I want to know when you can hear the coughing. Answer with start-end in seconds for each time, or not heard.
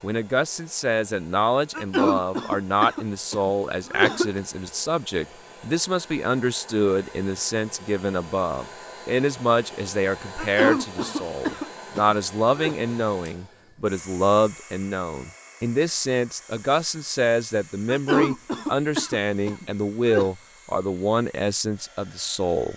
1.7-4.4, 10.3-12.8, 17.9-20.3.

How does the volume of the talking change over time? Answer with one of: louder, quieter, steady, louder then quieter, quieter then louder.
steady.